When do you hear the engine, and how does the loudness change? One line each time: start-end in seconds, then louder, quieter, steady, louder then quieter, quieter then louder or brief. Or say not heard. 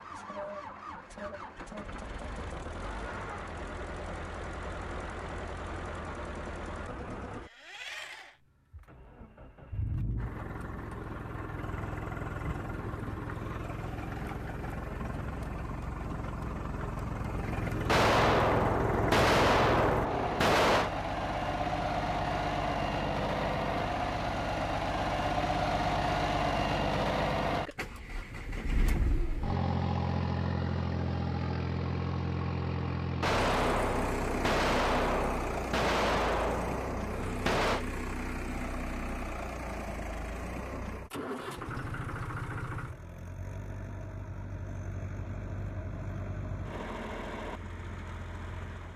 0.0-48.9 louder then quieter.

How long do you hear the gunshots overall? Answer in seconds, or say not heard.
8 s.